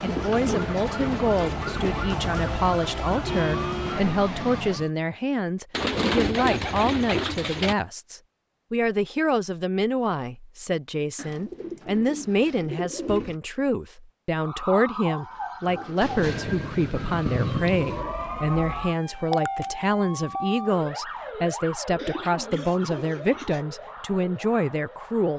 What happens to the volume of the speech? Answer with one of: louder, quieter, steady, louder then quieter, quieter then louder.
steady.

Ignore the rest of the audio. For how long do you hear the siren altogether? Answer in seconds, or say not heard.
16 s.